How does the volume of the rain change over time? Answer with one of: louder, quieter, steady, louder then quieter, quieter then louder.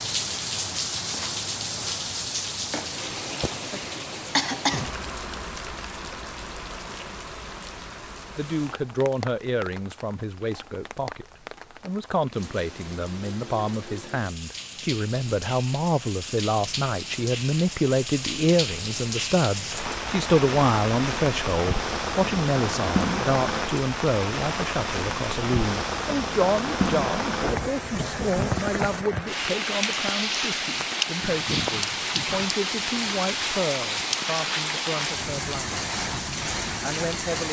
quieter then louder.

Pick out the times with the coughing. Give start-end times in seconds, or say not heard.
4.3-4.9.